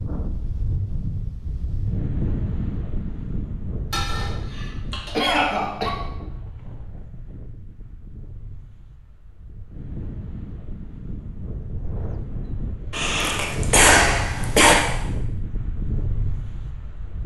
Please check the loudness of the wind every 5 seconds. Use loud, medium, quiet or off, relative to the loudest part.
loud, medium, loud, loud.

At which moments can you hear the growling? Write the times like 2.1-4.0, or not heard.
not heard.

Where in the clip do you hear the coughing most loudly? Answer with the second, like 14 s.
14 s.